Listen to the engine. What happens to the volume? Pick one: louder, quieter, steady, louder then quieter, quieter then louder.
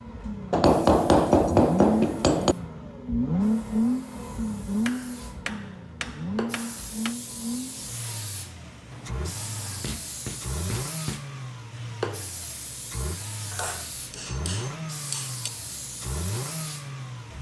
quieter.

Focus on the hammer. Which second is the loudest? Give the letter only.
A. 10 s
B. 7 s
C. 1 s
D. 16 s
C.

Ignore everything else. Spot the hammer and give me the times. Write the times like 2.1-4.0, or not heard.
0.5-2.5, 4.8-7.2, 8.9-11.2, 13.5-15.5.